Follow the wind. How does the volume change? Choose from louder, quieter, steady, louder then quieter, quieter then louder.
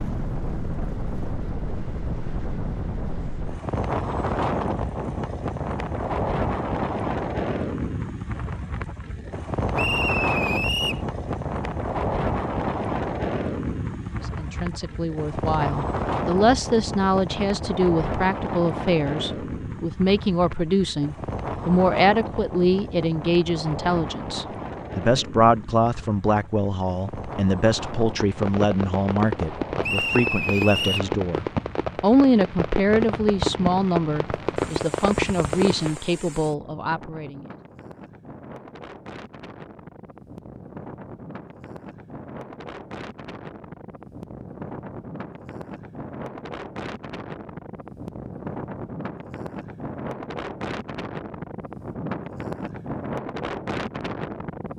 quieter then louder.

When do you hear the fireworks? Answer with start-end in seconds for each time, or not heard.
28.1-36.0.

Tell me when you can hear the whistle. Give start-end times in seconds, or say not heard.
9.8-11.1, 29.8-31.1.